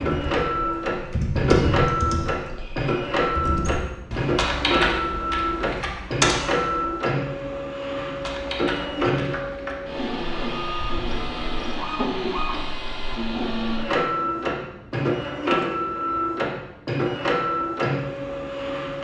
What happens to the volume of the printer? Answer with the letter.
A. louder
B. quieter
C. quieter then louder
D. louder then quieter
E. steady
E.